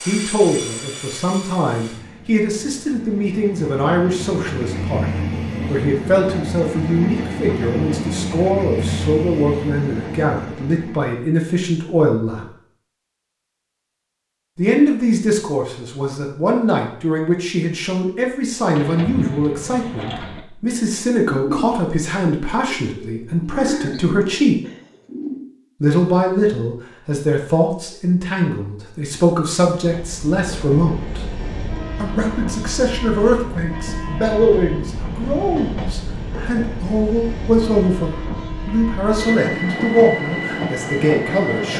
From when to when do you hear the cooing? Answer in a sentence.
The cooing can be heard from 18.7 to 25.4 s.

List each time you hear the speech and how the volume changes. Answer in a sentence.
The speech can be heard from 0.1 to 12.5 s, at a steady volume; from 14.6 to 24.6 s, at a steady volume; from 25.8 to 31.2 s, at a steady volume; and from 32.0 to 41.7 s, at a steady volume.